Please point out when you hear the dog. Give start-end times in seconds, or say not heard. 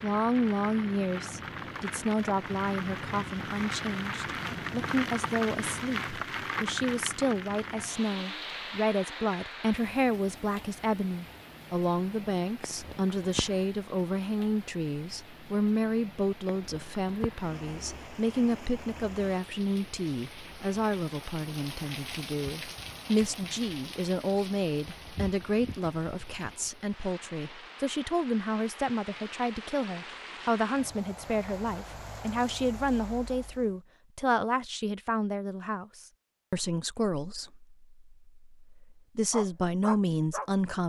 39.3-40.5.